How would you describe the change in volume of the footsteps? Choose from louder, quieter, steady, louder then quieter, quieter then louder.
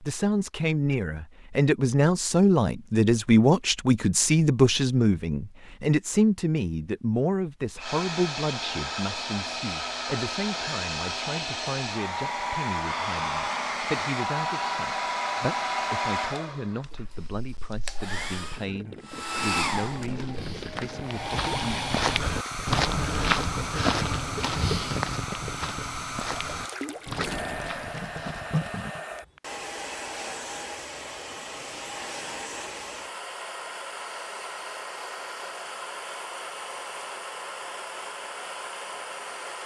louder then quieter.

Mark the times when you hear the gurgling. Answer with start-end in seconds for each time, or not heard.
18.3-29.0.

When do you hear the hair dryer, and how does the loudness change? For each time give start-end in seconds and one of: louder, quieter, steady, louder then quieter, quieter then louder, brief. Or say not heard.
7.8-39.6 quieter.